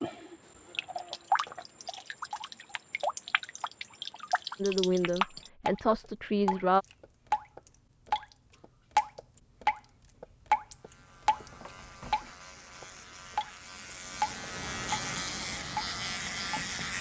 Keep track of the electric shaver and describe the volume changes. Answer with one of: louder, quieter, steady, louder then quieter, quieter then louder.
louder.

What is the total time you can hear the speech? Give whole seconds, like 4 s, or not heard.
2 s.